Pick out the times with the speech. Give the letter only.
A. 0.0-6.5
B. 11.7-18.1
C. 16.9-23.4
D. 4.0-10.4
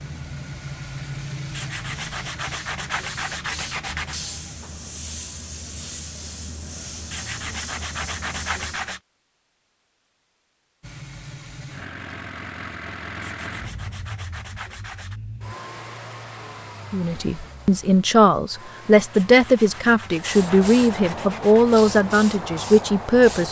C.